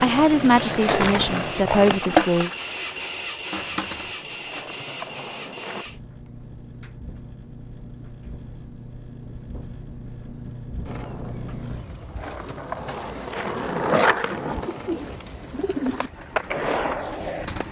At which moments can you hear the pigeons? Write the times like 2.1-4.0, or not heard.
14.5-16.1.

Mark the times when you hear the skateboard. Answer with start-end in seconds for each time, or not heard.
0.0-5.8, 10.8-17.6.